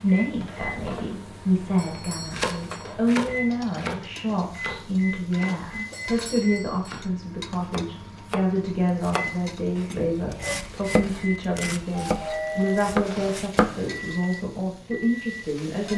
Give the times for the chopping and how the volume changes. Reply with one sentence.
The chopping can be heard from 2.2 to 13.9 s, getting quieter then louder.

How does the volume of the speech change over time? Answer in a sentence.
The loudness of the speech stays about the same.